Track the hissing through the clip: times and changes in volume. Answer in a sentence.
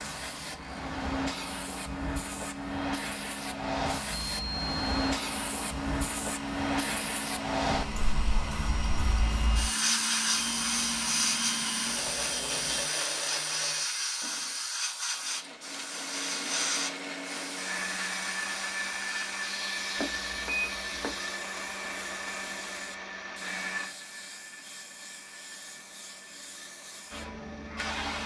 You can hear the hissing from 0.0 to 28.2 s, getting quieter.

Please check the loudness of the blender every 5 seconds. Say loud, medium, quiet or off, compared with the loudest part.
medium, loud, loud, loud, loud, quiet.